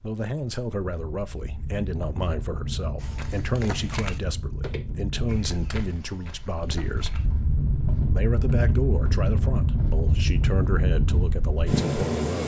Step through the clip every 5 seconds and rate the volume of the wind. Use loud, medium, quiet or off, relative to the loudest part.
medium, loud, loud.